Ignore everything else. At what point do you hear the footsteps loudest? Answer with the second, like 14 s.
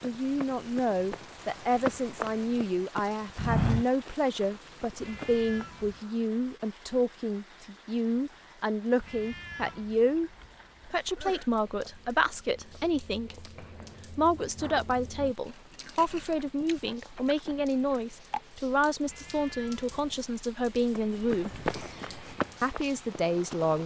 4 s.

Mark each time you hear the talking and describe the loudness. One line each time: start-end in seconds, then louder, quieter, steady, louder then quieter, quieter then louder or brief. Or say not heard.
0.0-13.4 steady
14.1-21.6 steady
22.6-23.8 brief.